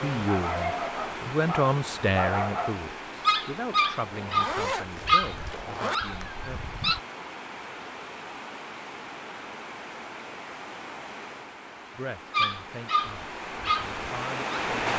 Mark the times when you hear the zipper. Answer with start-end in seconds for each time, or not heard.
4.1-6.0.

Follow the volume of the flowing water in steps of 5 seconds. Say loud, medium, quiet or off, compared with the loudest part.
loud, medium, loud.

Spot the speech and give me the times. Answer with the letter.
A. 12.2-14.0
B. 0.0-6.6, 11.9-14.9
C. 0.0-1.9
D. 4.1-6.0
B.